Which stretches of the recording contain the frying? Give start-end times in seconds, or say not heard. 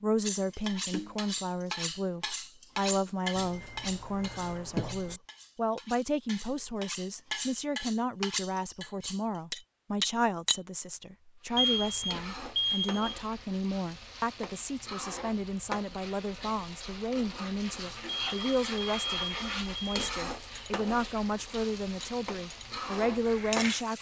11.4-23.9.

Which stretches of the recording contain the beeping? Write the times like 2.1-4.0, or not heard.
3.4-5.2, 11.6-13.2, 18.1-20.1.